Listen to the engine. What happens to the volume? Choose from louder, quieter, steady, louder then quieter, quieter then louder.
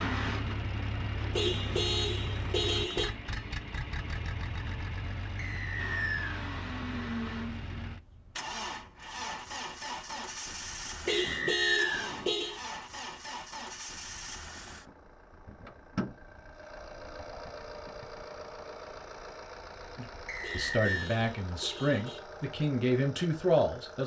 quieter.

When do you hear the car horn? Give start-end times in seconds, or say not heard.
1.3-3.1, 11.1-12.6, 20.4-22.2.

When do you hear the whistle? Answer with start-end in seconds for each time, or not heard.
5.3-6.4, 11.1-12.1, 20.2-21.1.